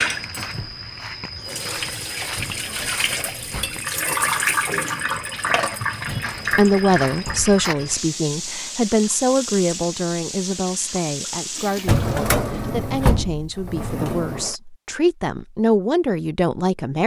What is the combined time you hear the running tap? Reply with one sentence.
The running tap can be heard for 12 seconds in total.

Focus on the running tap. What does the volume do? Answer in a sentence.
The volume of the running tap goes up, then down.